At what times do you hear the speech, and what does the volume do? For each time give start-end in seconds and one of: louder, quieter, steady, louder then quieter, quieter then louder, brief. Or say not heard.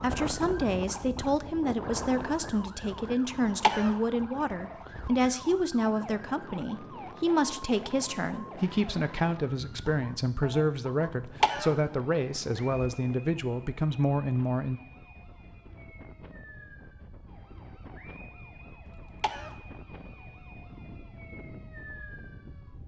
0.0-14.8 steady.